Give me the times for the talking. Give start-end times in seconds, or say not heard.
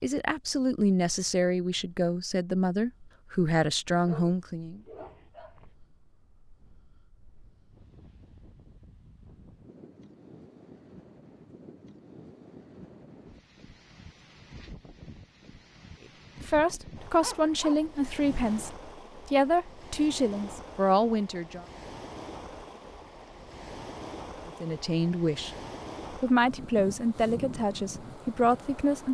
0.0-4.8, 16.4-21.6, 24.4-25.5, 26.2-29.0.